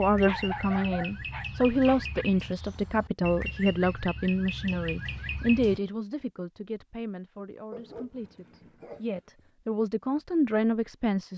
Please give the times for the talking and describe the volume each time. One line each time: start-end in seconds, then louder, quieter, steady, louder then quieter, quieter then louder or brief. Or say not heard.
0.0-11.3 quieter then louder.